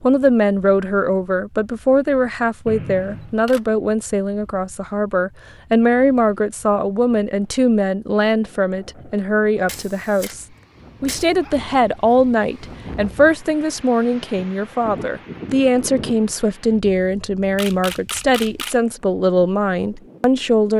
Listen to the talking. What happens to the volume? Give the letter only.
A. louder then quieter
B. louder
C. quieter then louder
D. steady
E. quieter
D.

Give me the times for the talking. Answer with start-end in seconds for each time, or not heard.
0.0-20.7.